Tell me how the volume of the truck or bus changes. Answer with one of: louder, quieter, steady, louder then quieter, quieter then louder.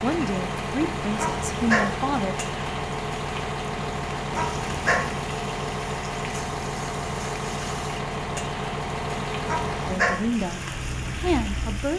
steady.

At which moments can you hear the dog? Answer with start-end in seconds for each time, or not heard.
1.1-1.9, 4.3-5.1, 9.4-10.2.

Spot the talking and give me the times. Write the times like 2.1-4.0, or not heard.
0.0-2.4, 9.8-11.9.